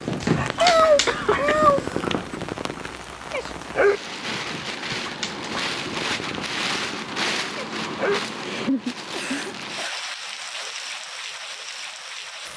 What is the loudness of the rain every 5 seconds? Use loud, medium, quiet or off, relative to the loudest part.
medium, loud, medium.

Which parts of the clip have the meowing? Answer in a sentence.
The meowing can be heard from 0.6 to 1.9 s.